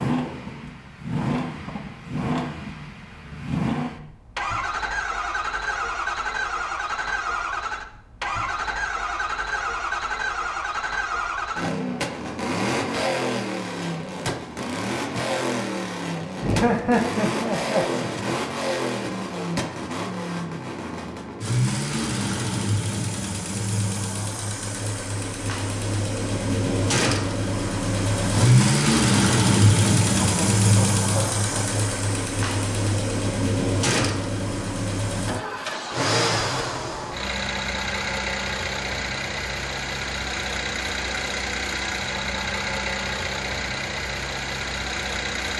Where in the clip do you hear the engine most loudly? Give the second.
29 s.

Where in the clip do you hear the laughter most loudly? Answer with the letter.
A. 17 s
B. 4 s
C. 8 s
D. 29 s
A.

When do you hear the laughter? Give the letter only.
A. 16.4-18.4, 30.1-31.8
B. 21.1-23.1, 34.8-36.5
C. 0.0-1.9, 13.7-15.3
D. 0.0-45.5
A.